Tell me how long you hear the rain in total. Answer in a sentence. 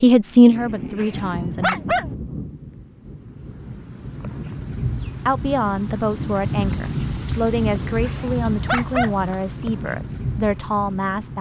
You can hear the rain for 11 seconds altogether.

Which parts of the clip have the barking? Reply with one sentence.
The barking can be heard from 0.5 to 2.1 s and from 7.6 to 9.2 s.